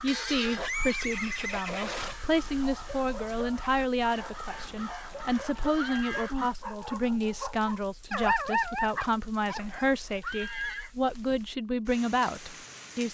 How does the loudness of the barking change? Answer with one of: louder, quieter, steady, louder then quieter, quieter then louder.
louder.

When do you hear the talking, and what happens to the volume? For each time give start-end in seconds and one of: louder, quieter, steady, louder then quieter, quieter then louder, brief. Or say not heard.
0.0-13.0 steady.